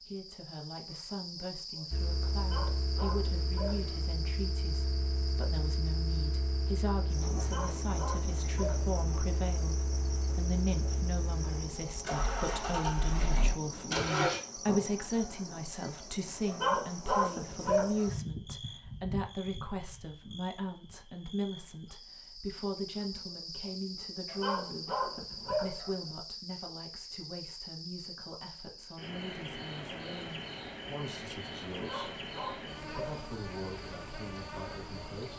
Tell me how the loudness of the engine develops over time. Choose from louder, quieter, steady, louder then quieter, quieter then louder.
louder.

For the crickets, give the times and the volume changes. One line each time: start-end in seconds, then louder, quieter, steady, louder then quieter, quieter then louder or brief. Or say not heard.
0.0-35.3 steady.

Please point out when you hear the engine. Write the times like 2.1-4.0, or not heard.
1.9-14.4.